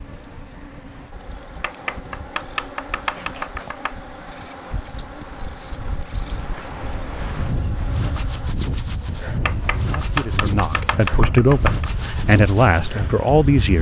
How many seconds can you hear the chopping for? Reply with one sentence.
The chopping can be heard for 5 seconds in total.